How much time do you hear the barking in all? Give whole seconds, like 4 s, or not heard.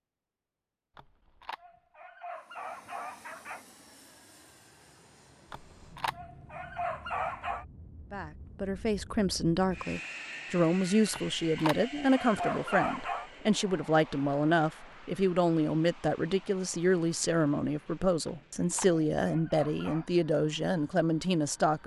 9 s.